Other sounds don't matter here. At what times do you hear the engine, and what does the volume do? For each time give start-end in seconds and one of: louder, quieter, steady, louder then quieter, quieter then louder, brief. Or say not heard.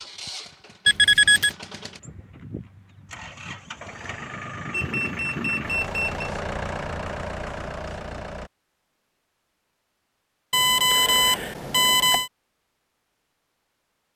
0.0-8.5 louder.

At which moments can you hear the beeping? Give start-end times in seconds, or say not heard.
0.8-1.5, 4.7-6.3, 10.5-12.3.